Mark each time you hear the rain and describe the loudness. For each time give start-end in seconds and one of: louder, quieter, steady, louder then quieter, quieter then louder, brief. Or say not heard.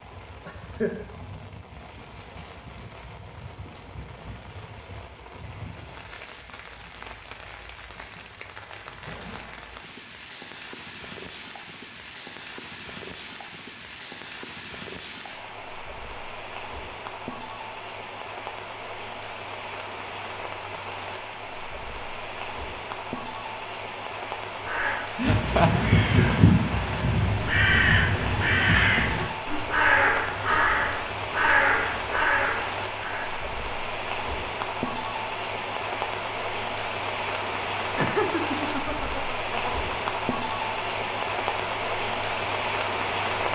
0.0-43.5 louder.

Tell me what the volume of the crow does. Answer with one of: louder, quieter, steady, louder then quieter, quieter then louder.
steady.